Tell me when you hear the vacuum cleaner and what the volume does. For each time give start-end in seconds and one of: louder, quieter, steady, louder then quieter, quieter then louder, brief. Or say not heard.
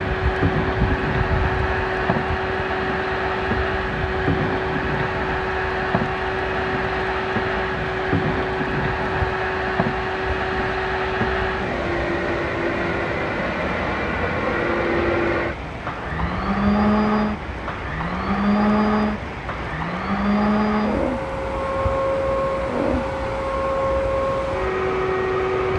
0.0-25.7 steady.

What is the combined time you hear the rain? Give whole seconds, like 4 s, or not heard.
26 s.